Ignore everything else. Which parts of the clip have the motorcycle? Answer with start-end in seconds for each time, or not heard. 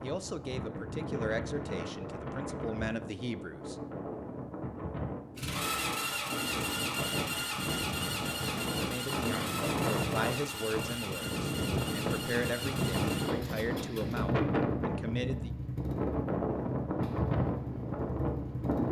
5.3-18.8.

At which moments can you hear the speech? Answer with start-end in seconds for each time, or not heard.
0.0-3.8, 8.8-15.5.